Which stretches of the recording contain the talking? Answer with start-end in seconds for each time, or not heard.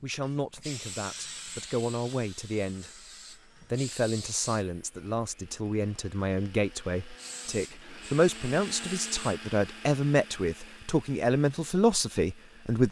0.0-2.9, 3.7-12.8.